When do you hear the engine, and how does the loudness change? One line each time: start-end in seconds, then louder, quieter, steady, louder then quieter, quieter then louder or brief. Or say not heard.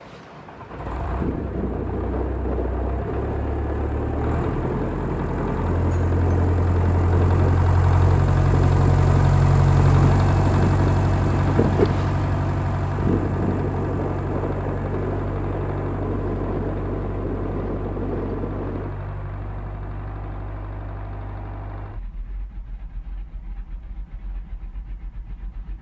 0.0-25.7 louder then quieter.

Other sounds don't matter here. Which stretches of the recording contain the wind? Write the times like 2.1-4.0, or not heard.
0.0-19.0.